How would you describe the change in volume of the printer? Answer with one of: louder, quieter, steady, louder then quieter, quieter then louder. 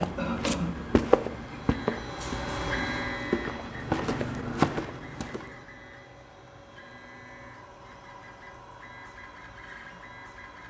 quieter.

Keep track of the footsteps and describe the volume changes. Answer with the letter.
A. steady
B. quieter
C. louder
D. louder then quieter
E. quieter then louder
E.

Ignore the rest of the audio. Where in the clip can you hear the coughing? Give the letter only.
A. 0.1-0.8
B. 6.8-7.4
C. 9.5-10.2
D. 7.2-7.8
A.